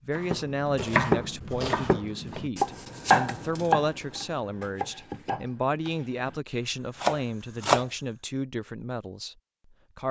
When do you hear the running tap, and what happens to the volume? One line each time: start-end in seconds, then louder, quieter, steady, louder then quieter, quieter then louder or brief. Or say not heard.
not heard.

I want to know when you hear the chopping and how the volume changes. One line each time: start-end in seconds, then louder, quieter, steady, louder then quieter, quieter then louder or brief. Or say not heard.
0.1-7.8 quieter then louder.